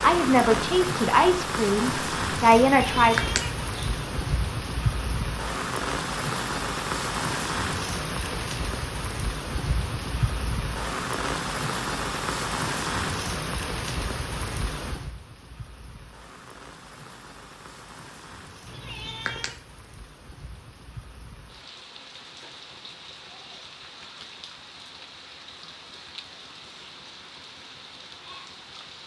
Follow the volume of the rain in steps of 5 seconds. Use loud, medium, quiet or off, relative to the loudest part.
loud, loud, loud, quiet, quiet, quiet.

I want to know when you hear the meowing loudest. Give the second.
3 s.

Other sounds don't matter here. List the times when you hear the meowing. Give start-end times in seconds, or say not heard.
2.7-4.2, 18.6-19.6.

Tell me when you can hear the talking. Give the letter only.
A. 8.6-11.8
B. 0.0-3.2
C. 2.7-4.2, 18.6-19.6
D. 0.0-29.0
B.